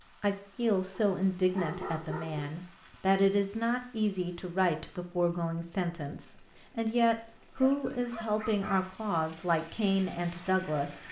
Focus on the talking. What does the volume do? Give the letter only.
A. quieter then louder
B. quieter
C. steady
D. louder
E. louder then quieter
C.